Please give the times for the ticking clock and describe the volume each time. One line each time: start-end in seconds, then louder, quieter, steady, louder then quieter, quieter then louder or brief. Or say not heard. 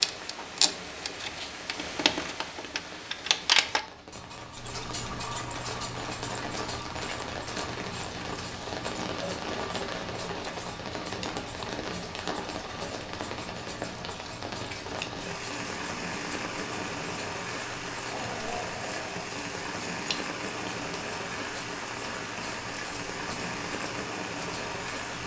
0.0-25.2 quieter.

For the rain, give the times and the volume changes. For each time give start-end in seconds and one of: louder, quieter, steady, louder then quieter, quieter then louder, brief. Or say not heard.
0.0-25.2 louder.